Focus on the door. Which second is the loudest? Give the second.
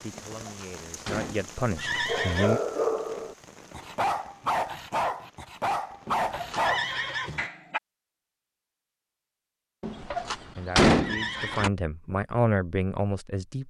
11 s.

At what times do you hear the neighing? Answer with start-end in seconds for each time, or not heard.
1.8-2.6, 6.5-7.5, 10.9-11.7.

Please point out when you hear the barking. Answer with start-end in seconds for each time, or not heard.
2.0-7.8.